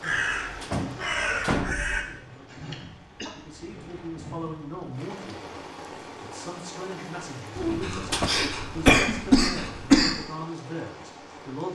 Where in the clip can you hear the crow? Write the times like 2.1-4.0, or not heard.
0.0-2.0.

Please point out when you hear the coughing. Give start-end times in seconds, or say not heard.
2.0-3.4, 7.5-10.2.